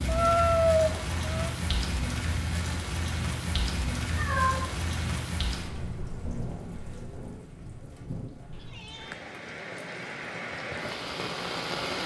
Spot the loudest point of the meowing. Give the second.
1 s.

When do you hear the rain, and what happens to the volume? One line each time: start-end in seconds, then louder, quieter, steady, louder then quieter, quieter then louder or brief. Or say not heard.
0.0-12.0 quieter then louder.